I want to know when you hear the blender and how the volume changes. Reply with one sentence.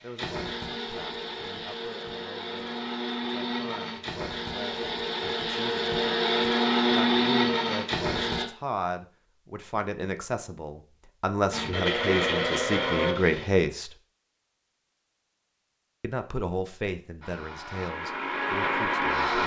You can hear the blender from 0.0 to 8.4 s, getting louder; briefly from 11.5 to 13.4 s; and briefly from 17.2 to 19.4 s.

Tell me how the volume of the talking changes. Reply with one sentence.
The volume of the talking goes up, then down.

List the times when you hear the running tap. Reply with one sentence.
The running tap can't be heard in this clip.